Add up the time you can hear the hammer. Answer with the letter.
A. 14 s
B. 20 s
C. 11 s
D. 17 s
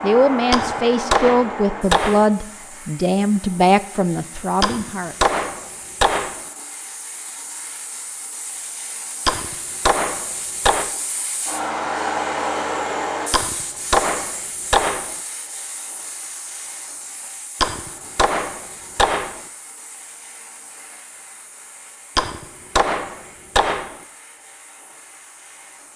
C.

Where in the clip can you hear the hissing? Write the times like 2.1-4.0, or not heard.
0.0-25.9.